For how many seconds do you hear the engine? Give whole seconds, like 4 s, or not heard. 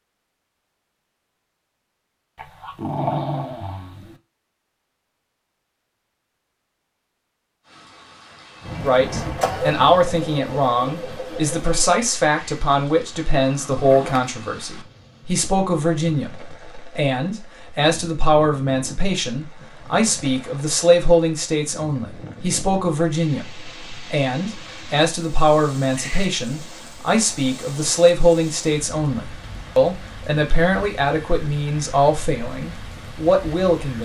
3 s.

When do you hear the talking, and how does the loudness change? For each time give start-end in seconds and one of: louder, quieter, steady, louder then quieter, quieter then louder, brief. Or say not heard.
8.8-34.0 steady.